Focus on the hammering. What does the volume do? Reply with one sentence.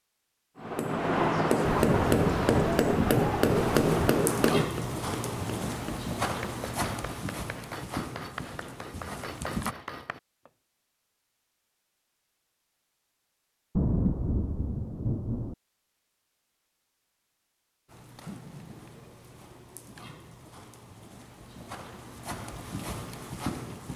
The loudness of the hammering goes down.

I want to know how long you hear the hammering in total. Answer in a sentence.
The hammering can be heard for 10 seconds in total.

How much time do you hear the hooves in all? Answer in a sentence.
You can hear the hooves for 12 seconds altogether.